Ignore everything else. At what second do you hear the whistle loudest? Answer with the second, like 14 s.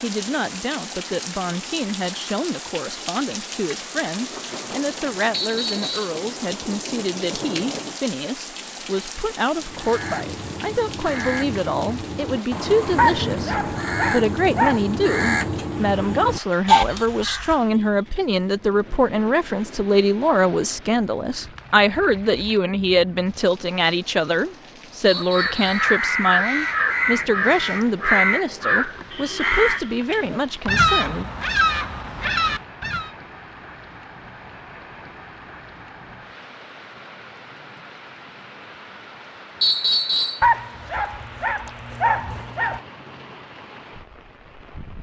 40 s.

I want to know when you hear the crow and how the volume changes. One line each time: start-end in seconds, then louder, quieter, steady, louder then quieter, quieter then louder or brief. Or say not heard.
9.6-17.6 louder
25.1-33.1 steady.